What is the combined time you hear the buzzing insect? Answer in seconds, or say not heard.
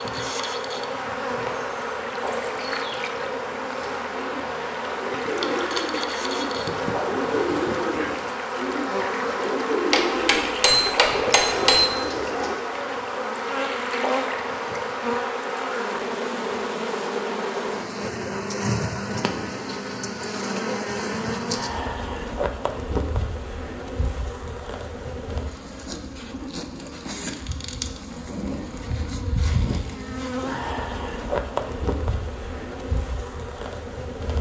34 s.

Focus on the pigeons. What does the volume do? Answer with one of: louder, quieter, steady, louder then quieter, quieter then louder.
louder.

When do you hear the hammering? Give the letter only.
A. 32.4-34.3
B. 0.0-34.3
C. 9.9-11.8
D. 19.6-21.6
C.